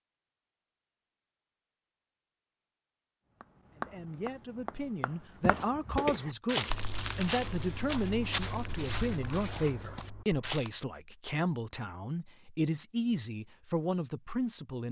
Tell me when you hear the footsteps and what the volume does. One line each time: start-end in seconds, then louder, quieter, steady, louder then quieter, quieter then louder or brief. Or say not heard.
5.4-10.7 quieter.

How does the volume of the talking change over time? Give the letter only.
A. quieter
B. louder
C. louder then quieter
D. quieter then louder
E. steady
E.